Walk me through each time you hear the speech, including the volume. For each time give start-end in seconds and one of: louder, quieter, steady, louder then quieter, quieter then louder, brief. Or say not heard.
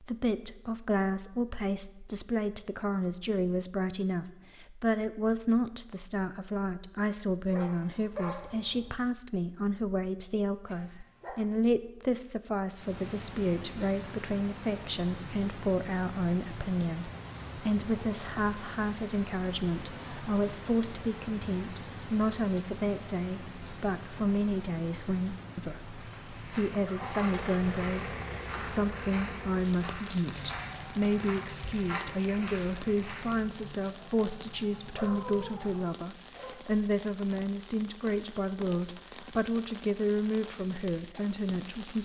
0.0-42.0 steady.